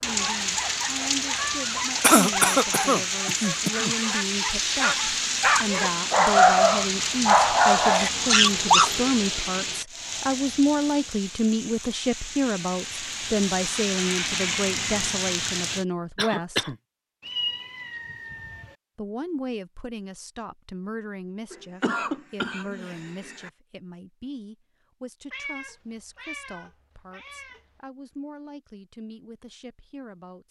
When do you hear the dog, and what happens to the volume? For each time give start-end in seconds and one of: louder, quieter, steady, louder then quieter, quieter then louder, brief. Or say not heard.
0.0-8.9 louder.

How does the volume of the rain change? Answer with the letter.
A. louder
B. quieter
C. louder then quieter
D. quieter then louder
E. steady
D.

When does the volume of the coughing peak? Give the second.
2 s.